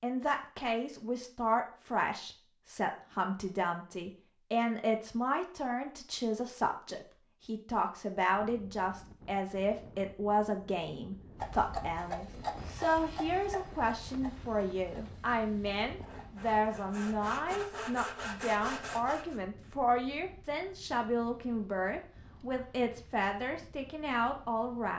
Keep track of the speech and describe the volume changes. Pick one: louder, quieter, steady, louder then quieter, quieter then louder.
steady.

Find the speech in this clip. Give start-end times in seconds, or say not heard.
0.0-24.9.